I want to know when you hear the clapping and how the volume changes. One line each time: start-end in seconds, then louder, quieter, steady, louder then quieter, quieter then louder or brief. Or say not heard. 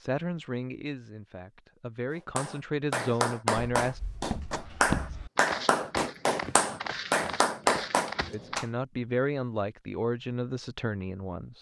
2.4-8.7 steady.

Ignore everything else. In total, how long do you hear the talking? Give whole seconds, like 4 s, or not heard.
7 s.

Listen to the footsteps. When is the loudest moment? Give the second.
5 s.